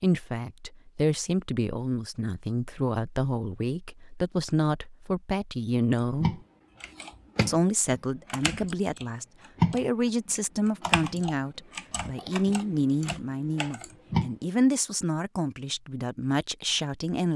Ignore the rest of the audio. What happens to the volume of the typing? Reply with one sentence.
The volume of the typing goes up, then down.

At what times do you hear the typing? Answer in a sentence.
The typing can be heard from 6.2 to 14.3 s.